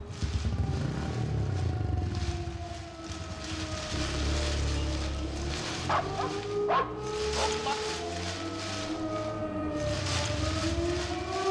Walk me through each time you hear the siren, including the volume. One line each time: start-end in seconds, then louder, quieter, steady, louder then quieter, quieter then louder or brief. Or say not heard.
0.0-11.4 louder.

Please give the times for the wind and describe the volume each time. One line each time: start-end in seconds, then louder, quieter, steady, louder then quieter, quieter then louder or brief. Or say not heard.
0.0-11.4 louder.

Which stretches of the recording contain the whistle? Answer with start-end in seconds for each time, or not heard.
not heard.